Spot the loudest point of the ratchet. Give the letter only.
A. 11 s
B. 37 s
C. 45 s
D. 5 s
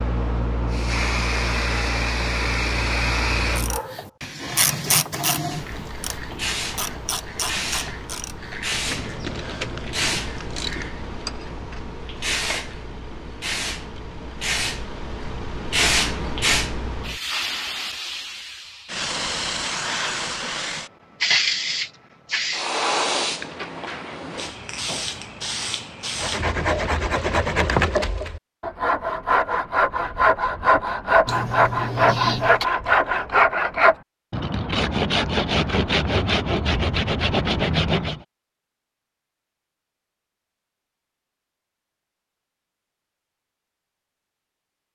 D.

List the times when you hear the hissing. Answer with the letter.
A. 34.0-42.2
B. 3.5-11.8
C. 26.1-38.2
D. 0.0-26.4
D.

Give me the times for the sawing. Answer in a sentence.
The sawing can be heard from 26.1 to 38.2 s.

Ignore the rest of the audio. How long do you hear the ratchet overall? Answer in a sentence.
You can hear the ratchet for 8 seconds altogether.